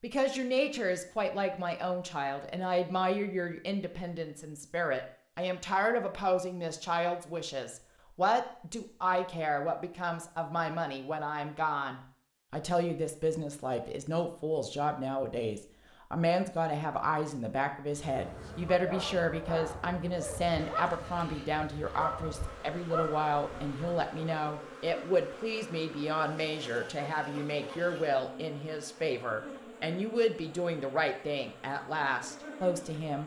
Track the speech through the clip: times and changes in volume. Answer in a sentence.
You can hear the speech from 0.0 to 33.2 s, at a steady volume.